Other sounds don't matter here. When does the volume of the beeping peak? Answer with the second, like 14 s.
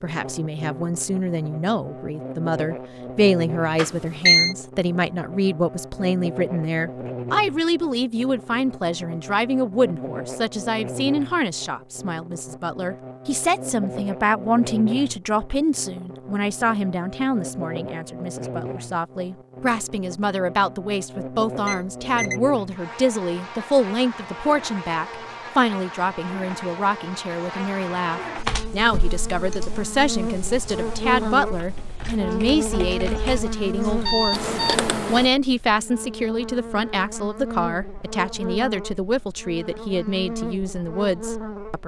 4 s.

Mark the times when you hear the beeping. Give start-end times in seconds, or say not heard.
3.8-4.5, 21.6-22.4, 34.0-34.9.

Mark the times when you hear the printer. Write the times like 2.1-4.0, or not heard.
not heard.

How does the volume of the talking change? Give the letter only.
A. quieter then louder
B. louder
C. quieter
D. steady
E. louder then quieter
D.